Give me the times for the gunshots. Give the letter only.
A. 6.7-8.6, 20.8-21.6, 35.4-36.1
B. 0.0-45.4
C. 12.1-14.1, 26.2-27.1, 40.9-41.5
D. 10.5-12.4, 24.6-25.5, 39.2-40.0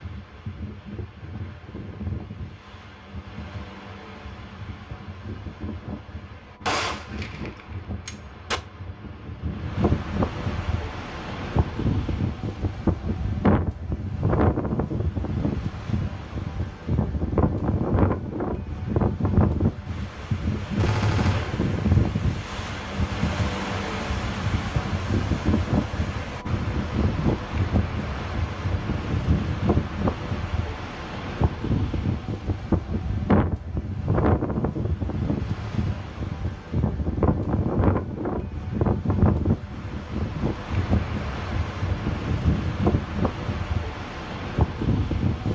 A.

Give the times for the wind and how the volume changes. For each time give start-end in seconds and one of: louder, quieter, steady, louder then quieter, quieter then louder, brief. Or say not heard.
0.0-45.4 louder.